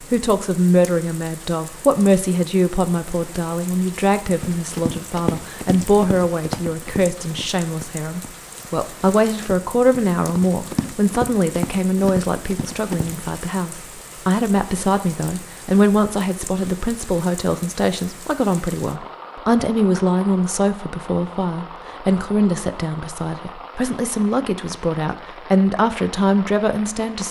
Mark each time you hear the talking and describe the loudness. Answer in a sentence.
The talking can be heard from 0.0 to 27.2 s, at a steady volume.